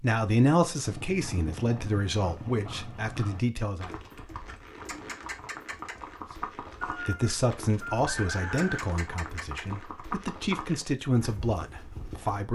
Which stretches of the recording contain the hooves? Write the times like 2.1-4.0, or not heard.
0.8-12.4.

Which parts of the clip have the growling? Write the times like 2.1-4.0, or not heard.
not heard.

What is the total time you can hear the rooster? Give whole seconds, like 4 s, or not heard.
2 s.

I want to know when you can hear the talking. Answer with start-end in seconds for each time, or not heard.
0.0-3.9, 6.9-12.5.